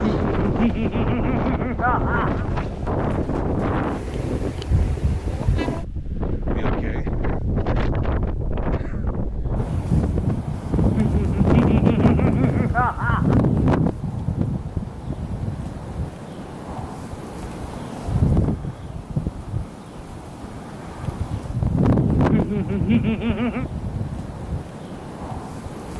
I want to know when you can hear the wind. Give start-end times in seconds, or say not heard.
0.0-25.9.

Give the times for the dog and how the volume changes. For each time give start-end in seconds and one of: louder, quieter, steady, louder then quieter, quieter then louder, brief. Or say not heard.
not heard.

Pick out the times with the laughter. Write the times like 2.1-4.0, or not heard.
0.0-2.5, 10.9-13.3, 22.3-23.6.